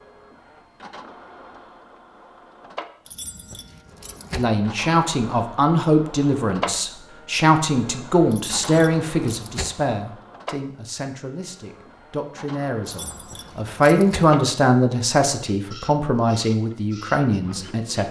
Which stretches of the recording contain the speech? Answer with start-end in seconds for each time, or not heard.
4.3-18.0.